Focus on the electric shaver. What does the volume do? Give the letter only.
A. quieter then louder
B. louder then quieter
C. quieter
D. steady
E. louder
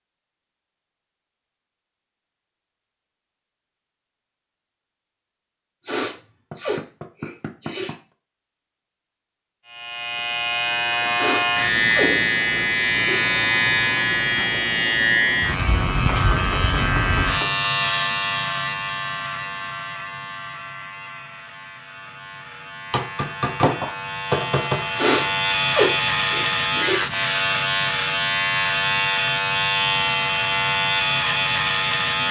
A.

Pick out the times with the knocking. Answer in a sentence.
The knocking can be heard from 6.5 to 8.0 s, from 16.1 to 17.6 s and from 22.9 to 24.9 s.